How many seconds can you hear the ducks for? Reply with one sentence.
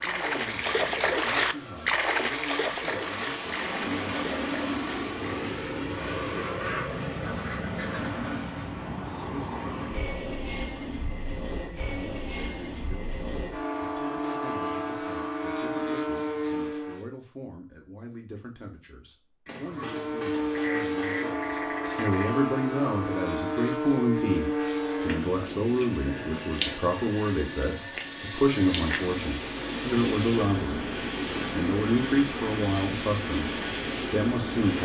You can hear the ducks for 5 seconds altogether.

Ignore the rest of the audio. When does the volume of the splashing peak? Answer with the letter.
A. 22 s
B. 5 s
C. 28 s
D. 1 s
D.